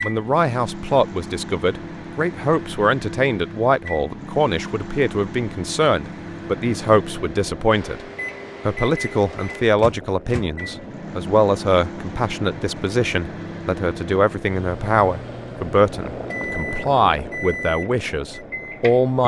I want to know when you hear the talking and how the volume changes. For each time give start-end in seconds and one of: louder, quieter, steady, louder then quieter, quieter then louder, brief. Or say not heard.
0.0-8.1 steady
8.7-19.2 steady.